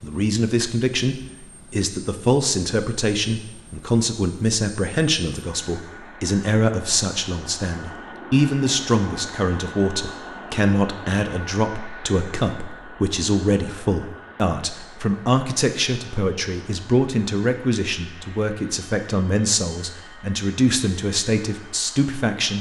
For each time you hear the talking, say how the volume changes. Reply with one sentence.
The talking can be heard from 0.0 to 22.5 s, at a steady volume.